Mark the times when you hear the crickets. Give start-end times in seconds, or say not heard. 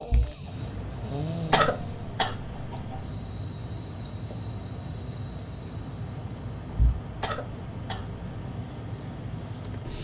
2.7-10.0.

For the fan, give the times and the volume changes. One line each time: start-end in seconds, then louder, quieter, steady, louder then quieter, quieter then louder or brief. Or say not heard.
0.0-10.0 steady.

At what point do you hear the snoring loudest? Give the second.
1 s.